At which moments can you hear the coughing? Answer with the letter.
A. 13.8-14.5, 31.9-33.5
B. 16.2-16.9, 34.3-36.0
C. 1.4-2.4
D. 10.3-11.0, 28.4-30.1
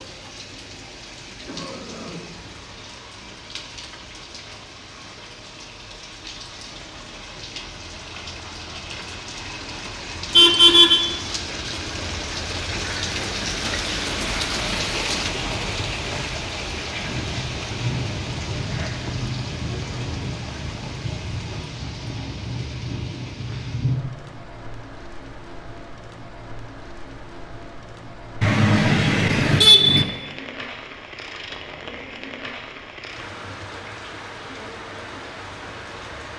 C.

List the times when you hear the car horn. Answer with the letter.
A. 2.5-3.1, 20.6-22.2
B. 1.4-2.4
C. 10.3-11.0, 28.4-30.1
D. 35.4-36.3
C.